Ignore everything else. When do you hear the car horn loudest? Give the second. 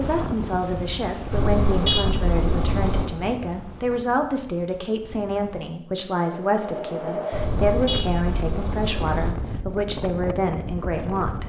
2 s.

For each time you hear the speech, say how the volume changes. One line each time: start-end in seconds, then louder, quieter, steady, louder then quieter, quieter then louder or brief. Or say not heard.
0.0-11.4 steady.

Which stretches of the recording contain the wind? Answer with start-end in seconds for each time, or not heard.
0.0-11.4.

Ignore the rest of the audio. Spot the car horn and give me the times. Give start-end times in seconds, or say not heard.
1.3-3.1, 7.3-9.3.